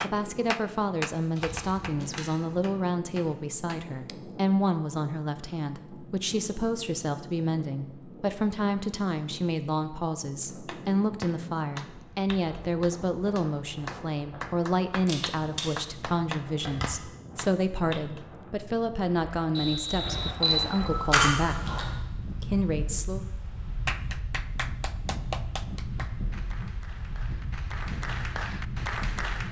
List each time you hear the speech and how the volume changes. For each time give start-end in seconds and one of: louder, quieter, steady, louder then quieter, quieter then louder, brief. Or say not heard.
0.0-23.2 steady.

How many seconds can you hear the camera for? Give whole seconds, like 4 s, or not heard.
5 s.